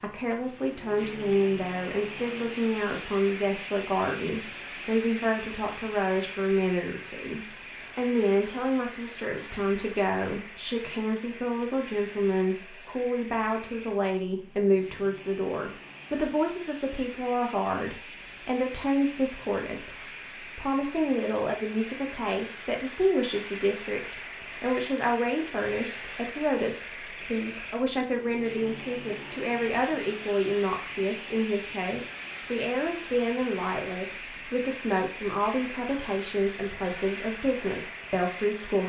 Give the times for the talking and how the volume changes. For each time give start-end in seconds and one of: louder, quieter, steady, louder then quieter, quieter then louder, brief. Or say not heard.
0.0-38.8 steady.